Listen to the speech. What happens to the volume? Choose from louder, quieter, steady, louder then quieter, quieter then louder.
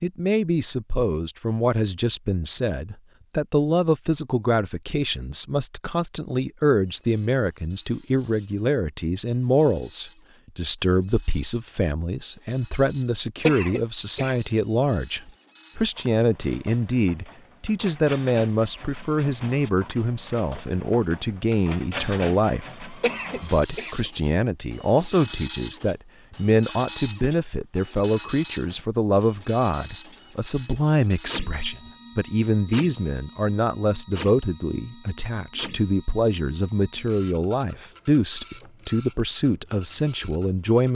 steady.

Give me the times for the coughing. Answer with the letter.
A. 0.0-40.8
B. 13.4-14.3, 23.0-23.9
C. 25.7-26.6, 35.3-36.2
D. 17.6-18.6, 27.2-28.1
B.